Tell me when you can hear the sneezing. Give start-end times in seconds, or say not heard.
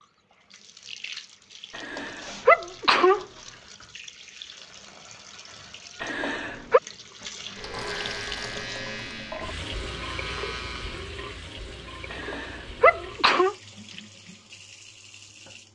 1.8-3.2, 6.0-6.8, 12.1-13.6.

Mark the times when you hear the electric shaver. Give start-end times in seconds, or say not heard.
7.5-11.2.